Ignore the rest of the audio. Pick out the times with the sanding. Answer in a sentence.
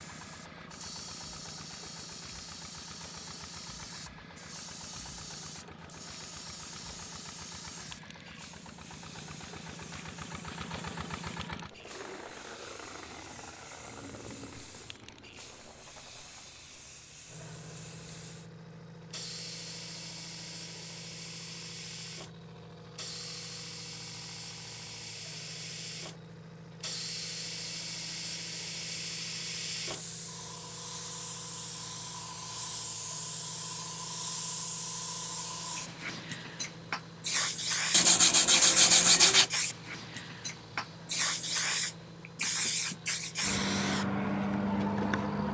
The sanding can be heard from 37.9 to 39.5 s.